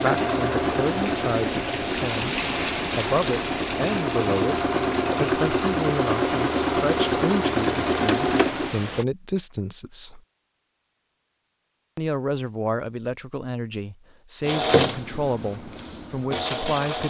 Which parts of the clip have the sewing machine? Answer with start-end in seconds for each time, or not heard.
0.0-8.8, 14.4-17.0.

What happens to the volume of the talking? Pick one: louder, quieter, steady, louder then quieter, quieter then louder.
steady.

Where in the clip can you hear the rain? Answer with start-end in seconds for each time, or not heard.
0.0-9.1.